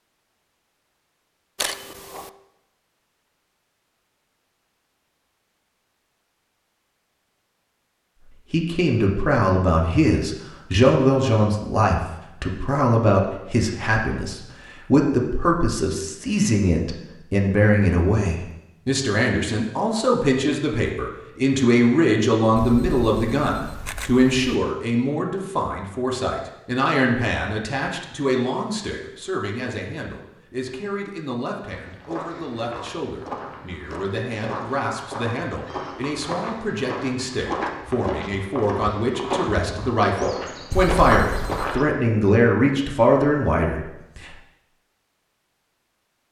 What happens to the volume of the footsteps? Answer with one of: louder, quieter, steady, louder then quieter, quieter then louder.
louder.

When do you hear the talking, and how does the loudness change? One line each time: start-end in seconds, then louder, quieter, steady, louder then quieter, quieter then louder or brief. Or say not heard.
8.5-44.3 quieter then louder.